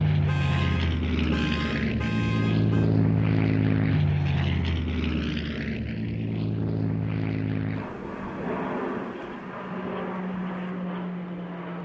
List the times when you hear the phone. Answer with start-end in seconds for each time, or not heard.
not heard.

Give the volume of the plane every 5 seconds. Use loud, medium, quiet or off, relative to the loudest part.
loud, medium, medium.